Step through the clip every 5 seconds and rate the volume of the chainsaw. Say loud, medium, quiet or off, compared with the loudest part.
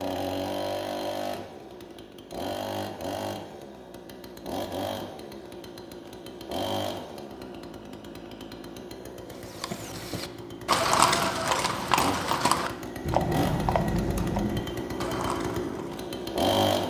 medium, medium, medium, loud.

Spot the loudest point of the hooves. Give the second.
11 s.